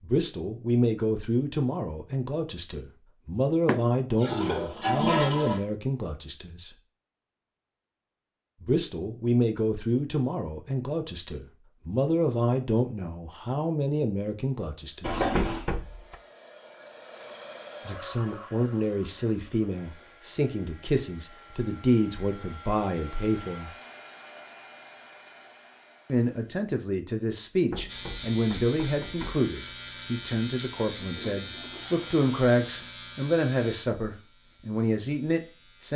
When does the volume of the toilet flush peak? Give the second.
5 s.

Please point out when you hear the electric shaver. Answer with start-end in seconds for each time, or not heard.
27.9-35.9.